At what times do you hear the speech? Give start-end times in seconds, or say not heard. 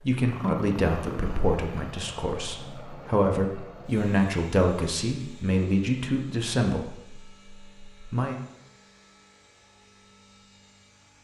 0.0-8.3.